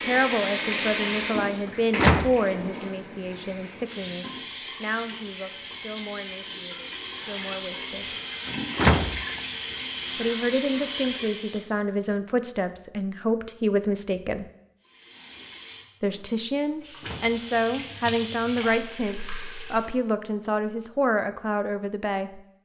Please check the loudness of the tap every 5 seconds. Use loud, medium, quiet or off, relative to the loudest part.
loud, loud, loud, medium, off.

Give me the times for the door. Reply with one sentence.
You can hear the door from 1.9 to 2.4 s, from 8.8 to 9.2 s and from 17.0 to 17.4 s.